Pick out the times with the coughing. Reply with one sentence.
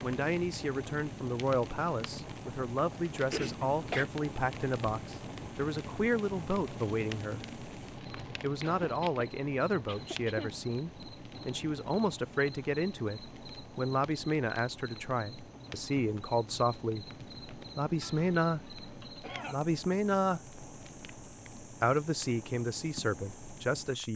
You can hear the coughing from 3.3 to 4.0 s, from 8.6 to 10.6 s and from 18.0 to 19.7 s.